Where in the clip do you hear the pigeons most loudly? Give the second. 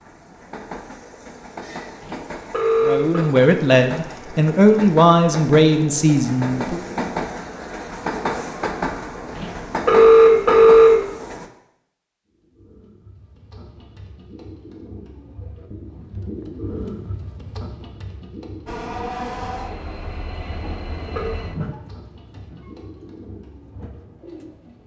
17 s.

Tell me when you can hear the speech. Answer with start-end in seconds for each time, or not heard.
2.8-6.8.